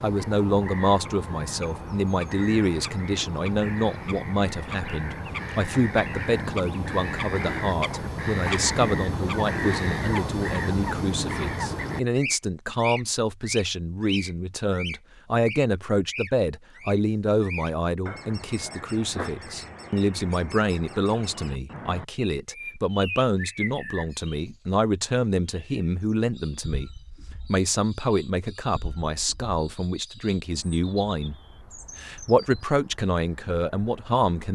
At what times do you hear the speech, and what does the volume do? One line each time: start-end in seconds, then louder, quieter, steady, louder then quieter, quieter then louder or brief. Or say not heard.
0.0-34.4 steady.